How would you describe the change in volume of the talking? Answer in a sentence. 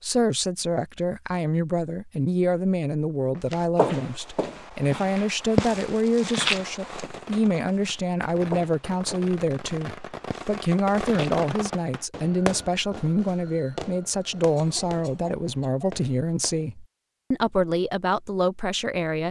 The volume of the talking stays about the same.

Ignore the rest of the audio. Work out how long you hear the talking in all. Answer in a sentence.
You can hear the talking for 19 seconds altogether.